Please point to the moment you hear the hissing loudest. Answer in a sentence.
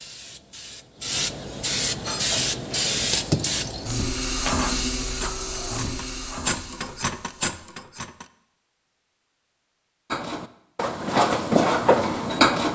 The loudest moment of the hissing is at 3 seconds.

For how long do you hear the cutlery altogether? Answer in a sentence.
The cutlery can be heard for 9 seconds in total.